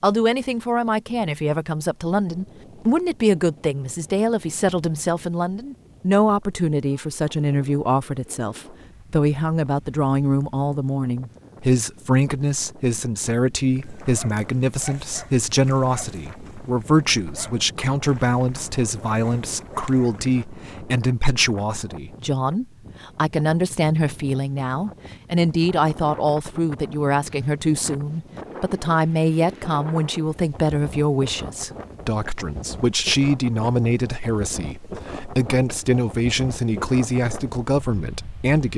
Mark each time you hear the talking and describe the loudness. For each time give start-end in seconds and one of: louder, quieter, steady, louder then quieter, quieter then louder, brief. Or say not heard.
0.0-38.7 steady.